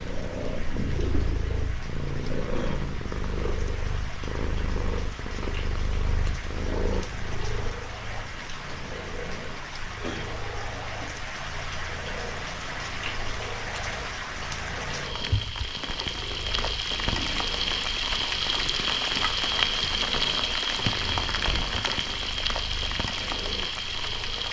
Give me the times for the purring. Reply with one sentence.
You can hear the purring from 0.0 to 24.4 s.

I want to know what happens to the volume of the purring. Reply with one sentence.
The volume of the purring goes down.